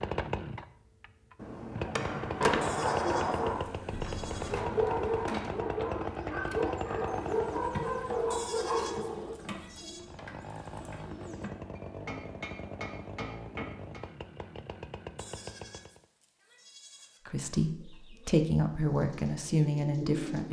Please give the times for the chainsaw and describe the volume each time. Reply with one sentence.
The chainsaw can be heard from 0.0 to 7.8 s, getting louder; and from 9.9 to 16.1 s, at a steady volume.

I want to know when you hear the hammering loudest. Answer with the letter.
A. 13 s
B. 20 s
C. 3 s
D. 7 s
C.